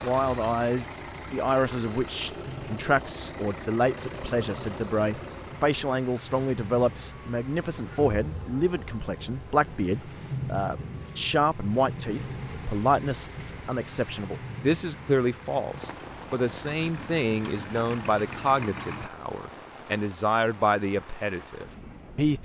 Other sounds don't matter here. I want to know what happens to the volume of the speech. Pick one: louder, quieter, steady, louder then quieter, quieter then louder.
steady.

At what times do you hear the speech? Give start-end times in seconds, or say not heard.
0.0-22.4.